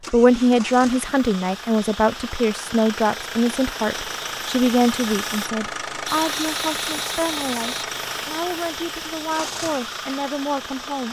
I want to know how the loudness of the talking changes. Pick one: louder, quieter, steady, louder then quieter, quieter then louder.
quieter.